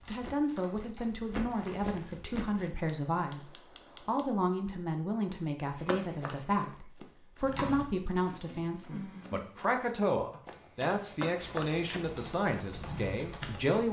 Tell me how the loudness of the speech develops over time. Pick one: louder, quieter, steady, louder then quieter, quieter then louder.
steady.